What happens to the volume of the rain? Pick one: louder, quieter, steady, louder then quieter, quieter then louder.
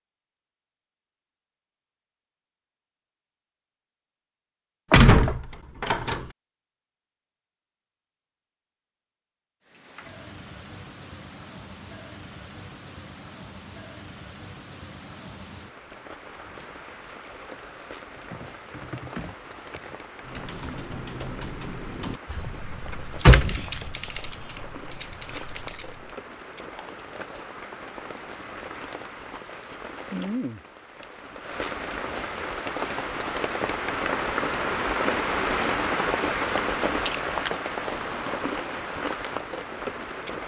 louder.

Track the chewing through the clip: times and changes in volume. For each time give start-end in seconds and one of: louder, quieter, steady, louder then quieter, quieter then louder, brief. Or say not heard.
not heard.